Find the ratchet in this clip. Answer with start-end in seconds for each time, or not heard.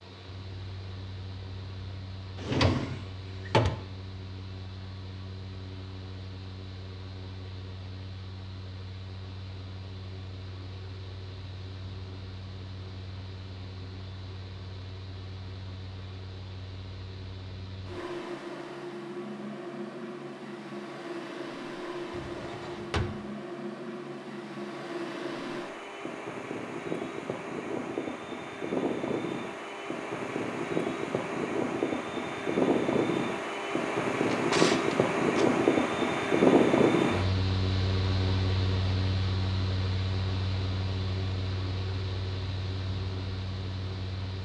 not heard.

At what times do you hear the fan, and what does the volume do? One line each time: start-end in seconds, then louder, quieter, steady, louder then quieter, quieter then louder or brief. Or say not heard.
0.0-44.4 louder.